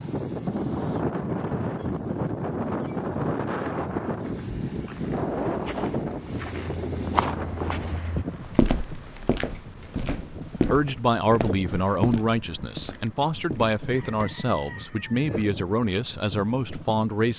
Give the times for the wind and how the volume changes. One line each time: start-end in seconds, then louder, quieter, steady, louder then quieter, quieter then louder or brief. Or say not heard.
0.0-17.3 quieter.